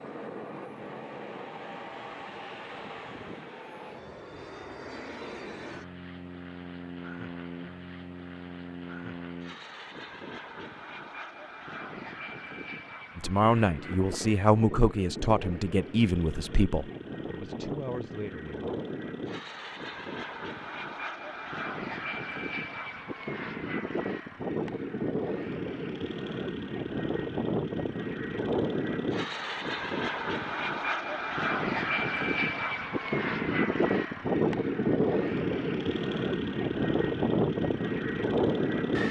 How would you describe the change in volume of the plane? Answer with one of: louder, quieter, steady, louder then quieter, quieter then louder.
louder.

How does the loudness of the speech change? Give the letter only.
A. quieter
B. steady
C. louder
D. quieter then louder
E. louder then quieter
A.